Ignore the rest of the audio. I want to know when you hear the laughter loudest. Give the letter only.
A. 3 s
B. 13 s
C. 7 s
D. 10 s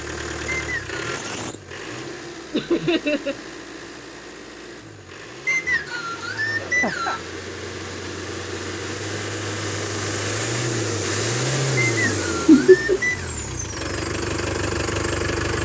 B.